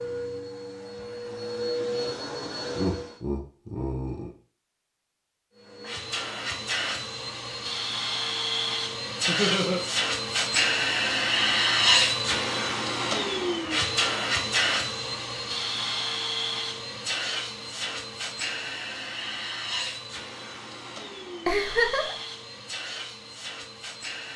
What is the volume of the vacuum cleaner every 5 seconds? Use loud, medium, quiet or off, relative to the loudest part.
medium, medium, loud, medium, quiet.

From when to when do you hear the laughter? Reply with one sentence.
You can hear the laughter from 2.8 to 4.3 s, from 9.2 to 9.8 s and from 21.4 to 22.1 s.